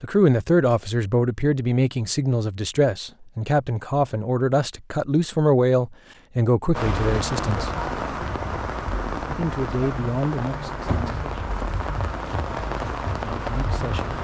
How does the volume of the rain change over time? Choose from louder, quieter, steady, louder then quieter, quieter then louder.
steady.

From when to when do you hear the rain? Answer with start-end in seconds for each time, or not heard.
6.7-14.1.